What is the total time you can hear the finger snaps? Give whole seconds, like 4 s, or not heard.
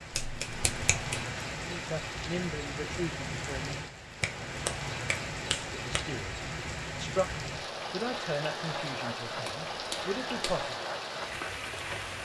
4 s.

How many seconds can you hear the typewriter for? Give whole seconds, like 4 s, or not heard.
not heard.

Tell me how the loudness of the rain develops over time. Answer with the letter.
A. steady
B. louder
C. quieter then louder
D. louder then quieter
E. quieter
A.